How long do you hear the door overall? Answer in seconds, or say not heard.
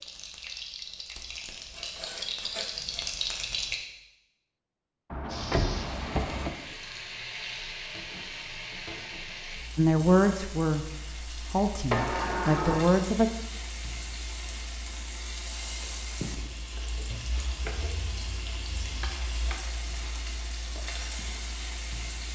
2 s.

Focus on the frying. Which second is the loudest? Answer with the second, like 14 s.
3 s.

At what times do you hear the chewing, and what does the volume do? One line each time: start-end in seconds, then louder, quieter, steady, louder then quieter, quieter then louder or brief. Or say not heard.
not heard.